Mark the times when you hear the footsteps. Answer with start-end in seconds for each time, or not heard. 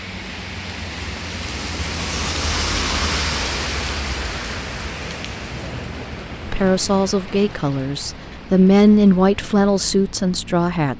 not heard.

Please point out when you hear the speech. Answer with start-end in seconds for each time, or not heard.
6.5-10.9.